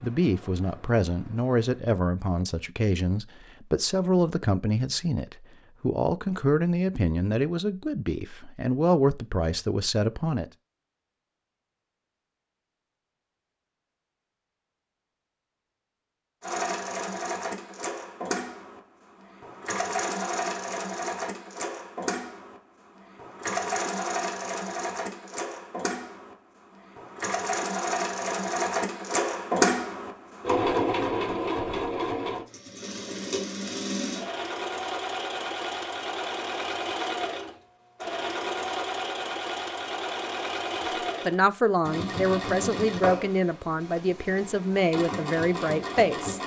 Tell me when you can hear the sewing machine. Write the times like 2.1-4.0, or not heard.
0.0-1.8, 16.4-46.4.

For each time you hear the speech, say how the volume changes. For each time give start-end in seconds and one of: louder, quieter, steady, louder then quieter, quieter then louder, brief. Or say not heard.
0.0-10.5 steady
41.2-46.4 steady.